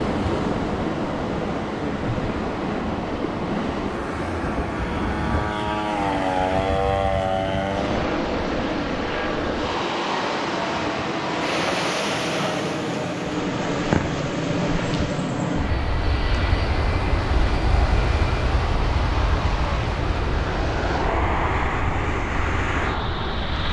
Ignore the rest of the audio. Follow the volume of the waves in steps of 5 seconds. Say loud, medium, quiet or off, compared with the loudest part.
loud, loud, loud, medium, medium.